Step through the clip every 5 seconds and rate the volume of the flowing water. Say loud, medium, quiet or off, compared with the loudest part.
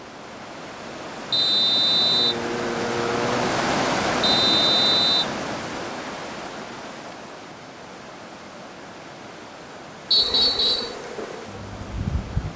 loud, medium, quiet.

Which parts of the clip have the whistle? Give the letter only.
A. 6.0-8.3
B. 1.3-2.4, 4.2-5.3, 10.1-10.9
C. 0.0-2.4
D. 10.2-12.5
B.